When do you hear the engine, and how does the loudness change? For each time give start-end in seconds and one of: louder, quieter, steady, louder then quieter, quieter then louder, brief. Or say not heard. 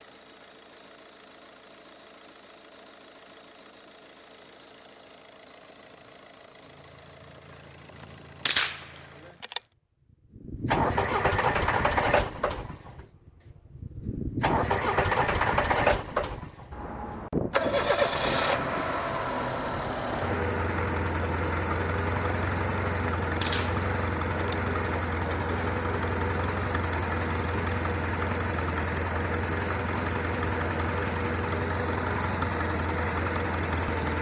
0.0-34.1 louder.